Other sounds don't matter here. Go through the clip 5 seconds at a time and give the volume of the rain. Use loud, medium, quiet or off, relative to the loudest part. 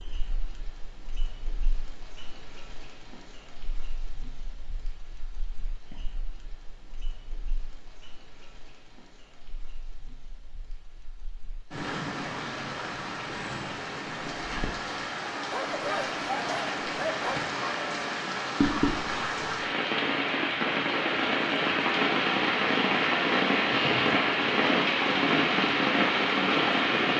quiet, quiet, quiet, medium, loud, loud.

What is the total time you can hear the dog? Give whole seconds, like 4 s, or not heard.
2 s.